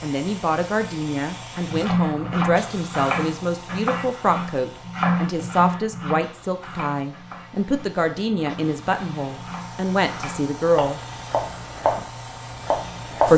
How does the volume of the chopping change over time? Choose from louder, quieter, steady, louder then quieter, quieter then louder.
quieter then louder.